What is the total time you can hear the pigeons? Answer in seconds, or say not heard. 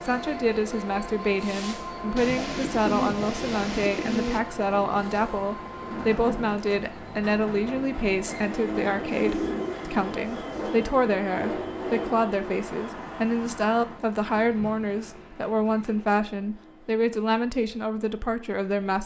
6 s.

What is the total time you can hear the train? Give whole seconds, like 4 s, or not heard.
19 s.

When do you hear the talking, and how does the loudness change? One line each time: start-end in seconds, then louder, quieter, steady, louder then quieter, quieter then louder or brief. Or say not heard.
0.0-19.0 steady.